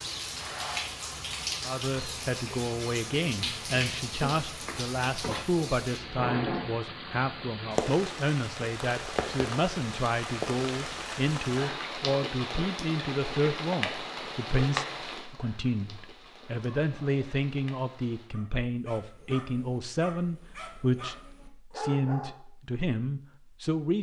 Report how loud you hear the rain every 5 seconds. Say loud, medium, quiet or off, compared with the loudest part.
loud, loud, loud, quiet, off.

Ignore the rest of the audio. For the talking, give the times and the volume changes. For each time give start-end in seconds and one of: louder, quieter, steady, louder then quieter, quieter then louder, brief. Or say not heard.
1.6-23.9 steady.